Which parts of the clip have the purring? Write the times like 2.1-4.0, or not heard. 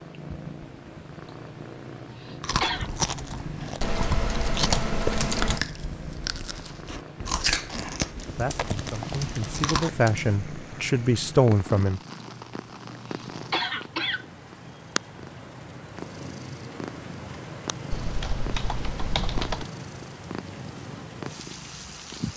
0.0-22.3.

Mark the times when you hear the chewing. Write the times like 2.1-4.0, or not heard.
2.4-10.0.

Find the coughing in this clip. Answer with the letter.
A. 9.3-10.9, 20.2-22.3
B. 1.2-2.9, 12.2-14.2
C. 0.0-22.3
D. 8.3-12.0
B.